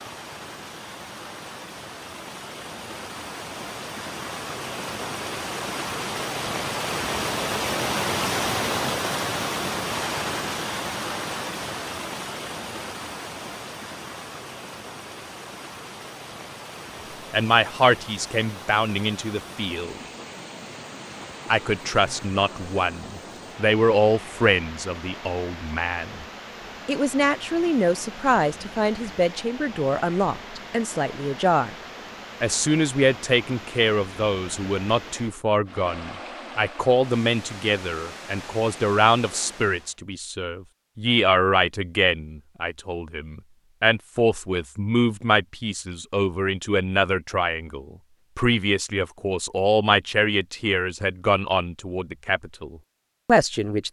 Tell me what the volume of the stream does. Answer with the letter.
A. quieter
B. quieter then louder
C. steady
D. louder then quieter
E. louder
A.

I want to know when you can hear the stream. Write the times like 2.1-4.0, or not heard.
0.0-40.0.